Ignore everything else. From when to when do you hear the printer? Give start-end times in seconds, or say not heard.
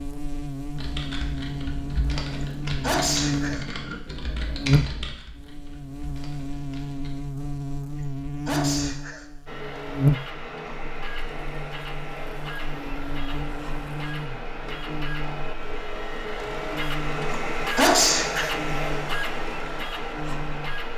9.4-20.9.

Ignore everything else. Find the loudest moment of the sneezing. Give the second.
18 s.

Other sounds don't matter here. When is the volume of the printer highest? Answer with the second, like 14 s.
18 s.